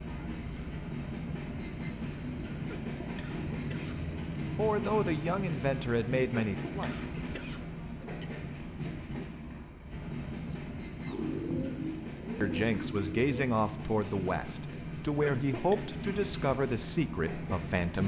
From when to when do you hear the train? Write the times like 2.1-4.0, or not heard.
0.0-18.0.